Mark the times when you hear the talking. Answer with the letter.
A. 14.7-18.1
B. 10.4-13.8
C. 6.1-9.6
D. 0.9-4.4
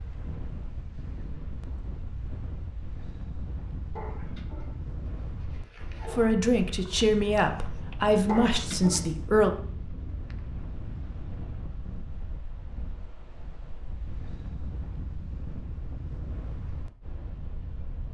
C.